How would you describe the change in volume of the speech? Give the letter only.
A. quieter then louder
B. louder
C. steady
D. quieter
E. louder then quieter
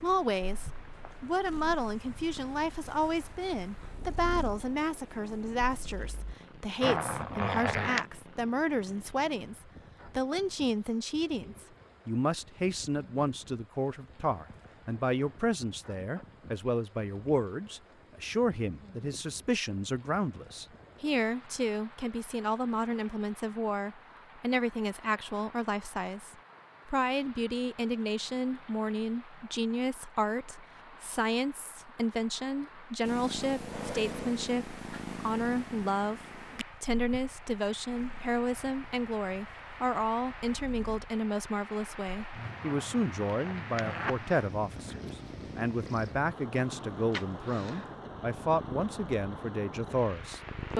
C.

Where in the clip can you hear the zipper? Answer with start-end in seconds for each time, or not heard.
6.8-8.1, 42.6-44.2.